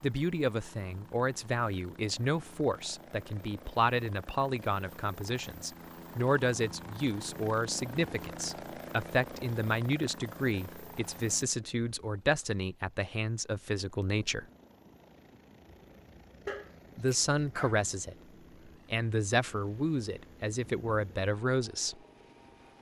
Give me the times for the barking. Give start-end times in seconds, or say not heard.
16.4-17.9.